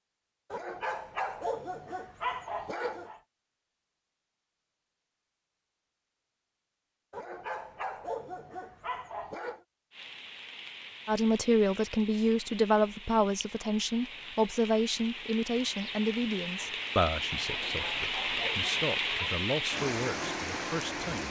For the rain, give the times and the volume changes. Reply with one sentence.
The rain can be heard from 9.9 to 21.2 s, getting louder.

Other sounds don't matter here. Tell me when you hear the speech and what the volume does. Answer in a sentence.
The speech can be heard from 11.1 to 21.2 s, getting quieter.